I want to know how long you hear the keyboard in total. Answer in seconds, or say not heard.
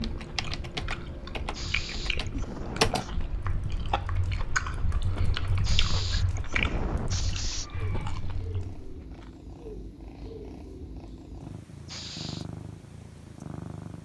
9 s.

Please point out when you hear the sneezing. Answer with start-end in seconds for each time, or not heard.
1.5-3.1, 5.6-7.7, 11.8-12.4.